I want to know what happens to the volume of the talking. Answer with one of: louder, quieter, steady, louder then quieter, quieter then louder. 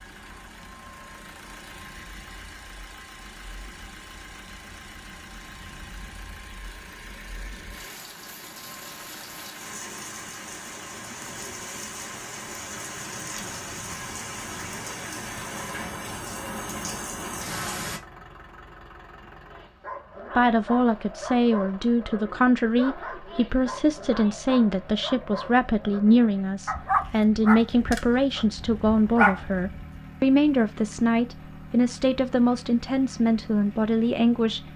steady.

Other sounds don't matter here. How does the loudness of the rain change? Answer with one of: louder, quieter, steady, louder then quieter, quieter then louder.
louder.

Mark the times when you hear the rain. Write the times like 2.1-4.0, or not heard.
0.0-18.0.